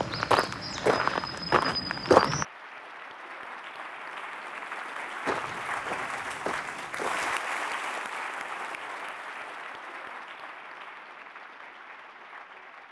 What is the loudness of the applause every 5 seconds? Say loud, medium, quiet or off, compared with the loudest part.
medium, loud, medium.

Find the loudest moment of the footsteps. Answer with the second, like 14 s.
2 s.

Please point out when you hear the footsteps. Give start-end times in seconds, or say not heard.
0.0-2.5, 5.2-7.3.